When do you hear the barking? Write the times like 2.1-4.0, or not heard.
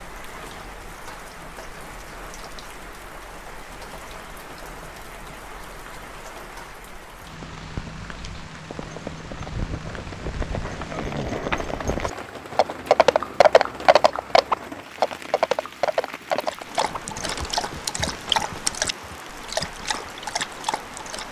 16.4-21.2.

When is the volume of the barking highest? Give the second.
18 s.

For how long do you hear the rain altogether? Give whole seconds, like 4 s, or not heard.
21 s.